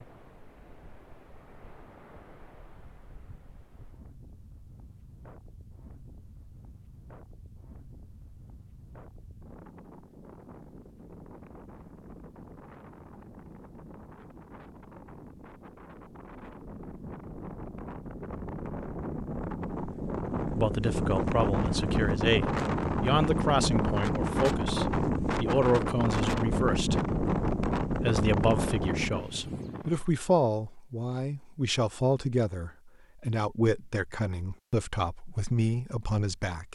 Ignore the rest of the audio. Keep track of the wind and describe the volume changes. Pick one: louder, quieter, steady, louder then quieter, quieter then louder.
louder.